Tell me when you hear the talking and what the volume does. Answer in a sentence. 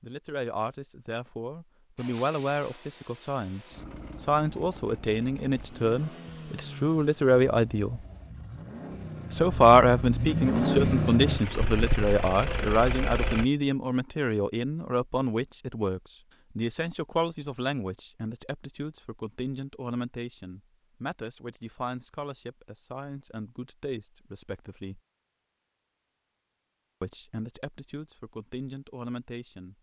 The talking can be heard from 0.0 to 8.0 s, getting louder; from 9.3 to 25.0 s, getting quieter; and briefly from 27.0 to 29.7 s.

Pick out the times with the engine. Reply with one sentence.
The engine can be heard from 1.9 to 13.4 s.